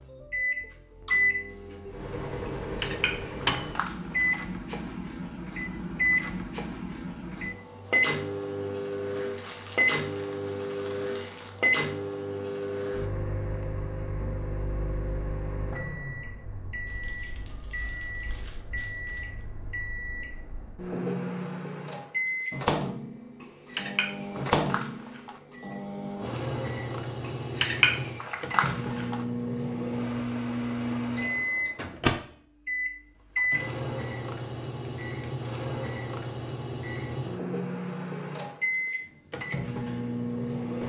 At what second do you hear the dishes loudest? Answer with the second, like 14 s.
28 s.